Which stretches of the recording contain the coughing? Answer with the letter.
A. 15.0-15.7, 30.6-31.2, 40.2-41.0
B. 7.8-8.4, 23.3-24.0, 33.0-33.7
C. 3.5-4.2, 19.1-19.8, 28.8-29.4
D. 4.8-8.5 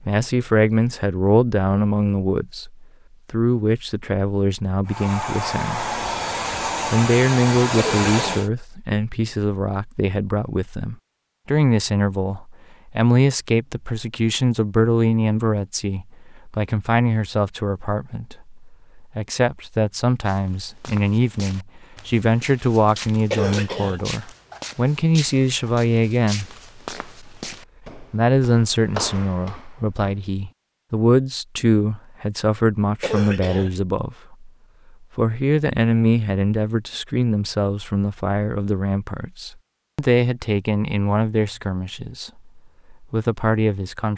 B.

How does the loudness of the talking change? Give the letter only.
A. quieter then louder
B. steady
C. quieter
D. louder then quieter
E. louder
B.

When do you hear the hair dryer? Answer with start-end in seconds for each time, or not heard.
4.8-8.5.